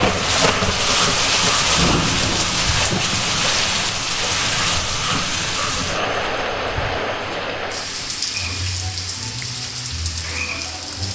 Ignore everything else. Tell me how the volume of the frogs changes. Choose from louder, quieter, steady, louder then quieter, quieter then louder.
quieter.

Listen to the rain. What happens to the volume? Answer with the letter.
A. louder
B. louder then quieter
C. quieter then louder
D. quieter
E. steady
D.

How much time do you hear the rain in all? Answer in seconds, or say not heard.
11 s.